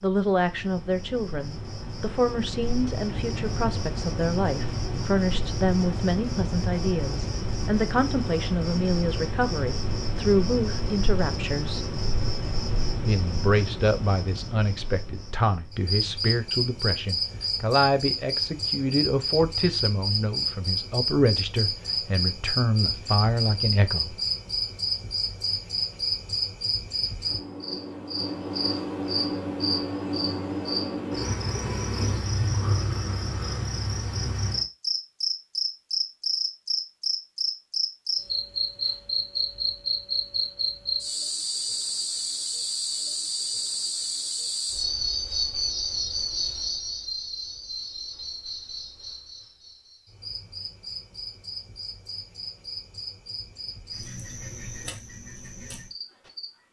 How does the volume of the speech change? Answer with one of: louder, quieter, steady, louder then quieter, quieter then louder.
steady.